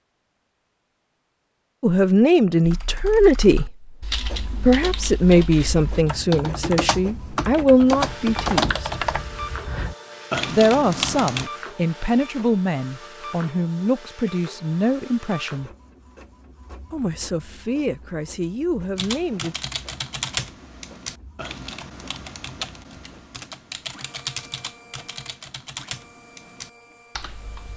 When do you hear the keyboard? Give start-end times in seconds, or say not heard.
2.6-11.5, 18.9-27.7.